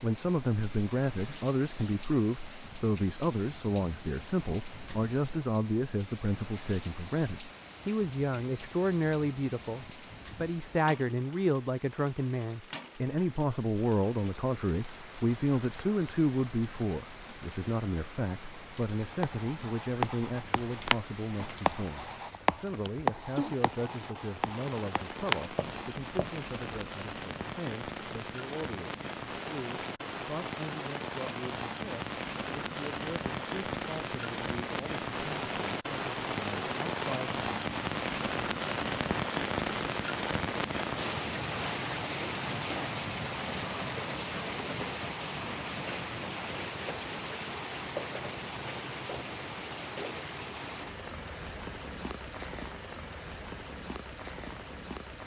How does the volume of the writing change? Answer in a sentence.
The volume of the writing goes down.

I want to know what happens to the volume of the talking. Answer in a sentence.
The volume of the talking goes down.